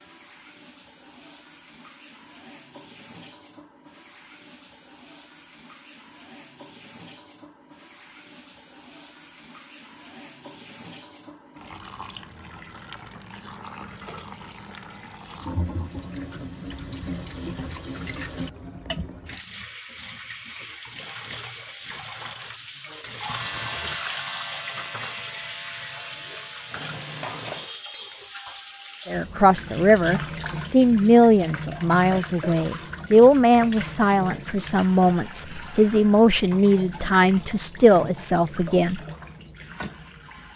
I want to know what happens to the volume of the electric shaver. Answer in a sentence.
The loudness of the electric shaver goes down.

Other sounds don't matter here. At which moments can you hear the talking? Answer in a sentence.
The talking can be heard from 29.1 to 39.0 s.